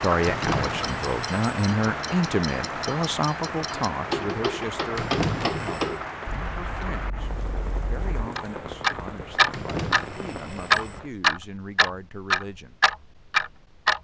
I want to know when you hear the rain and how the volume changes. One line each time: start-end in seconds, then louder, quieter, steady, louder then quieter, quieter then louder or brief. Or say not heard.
0.0-11.1 quieter.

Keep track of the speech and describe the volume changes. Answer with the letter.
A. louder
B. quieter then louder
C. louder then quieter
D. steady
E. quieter
E.